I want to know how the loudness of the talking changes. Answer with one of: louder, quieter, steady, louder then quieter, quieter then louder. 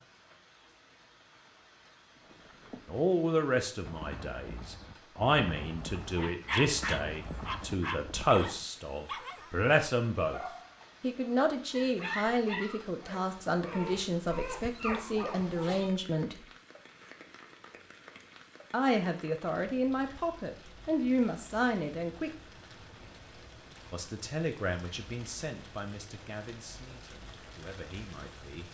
quieter.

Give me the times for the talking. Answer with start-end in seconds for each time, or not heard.
2.9-10.4, 11.0-16.4, 18.7-22.3, 23.9-28.6.